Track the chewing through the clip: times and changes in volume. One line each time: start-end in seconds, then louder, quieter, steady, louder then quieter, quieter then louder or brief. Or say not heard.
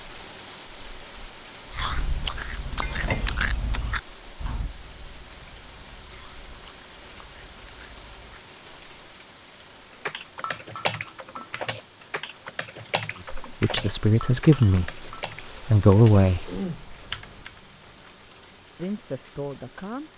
1.7-8.4 quieter.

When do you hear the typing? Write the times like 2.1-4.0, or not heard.
10.1-17.5.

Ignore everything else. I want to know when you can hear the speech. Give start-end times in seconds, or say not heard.
13.4-16.5, 18.8-20.1.